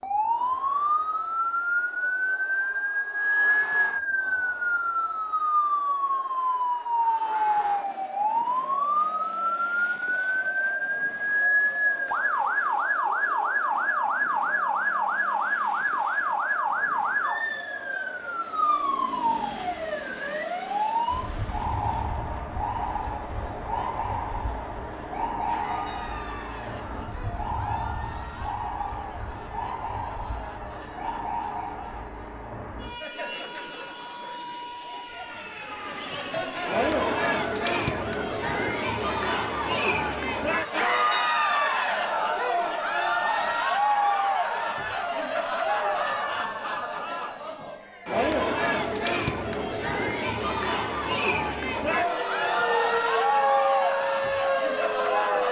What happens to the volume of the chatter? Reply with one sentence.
The loudness of the chatter goes up.